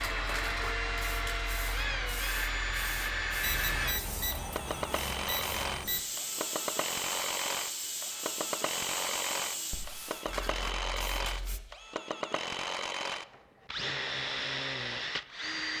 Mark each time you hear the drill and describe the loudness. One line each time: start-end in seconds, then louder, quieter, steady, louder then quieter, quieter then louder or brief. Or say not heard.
0.0-15.7 steady.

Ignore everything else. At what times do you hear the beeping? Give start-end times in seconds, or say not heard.
3.4-6.0.